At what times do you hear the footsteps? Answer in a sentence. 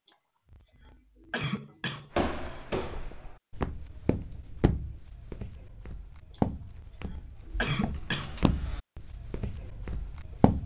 You can hear the footsteps from 2.1 to 10.6 s.